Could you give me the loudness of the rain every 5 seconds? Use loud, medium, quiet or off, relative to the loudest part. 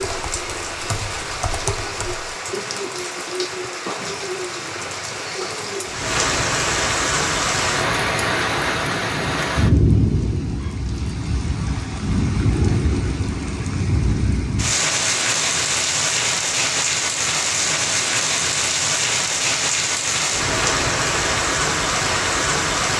medium, loud, loud, loud, loud.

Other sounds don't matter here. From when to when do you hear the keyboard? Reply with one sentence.
The keyboard can be heard from 0.0 to 2.4 s.